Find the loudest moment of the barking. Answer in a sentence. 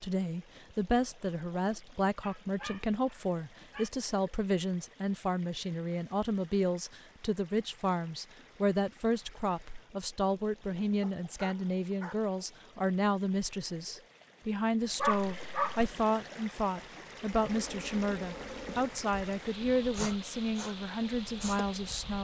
The loudest moment of the barking is at 15 seconds.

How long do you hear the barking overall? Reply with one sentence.
You can hear the barking for 4 seconds altogether.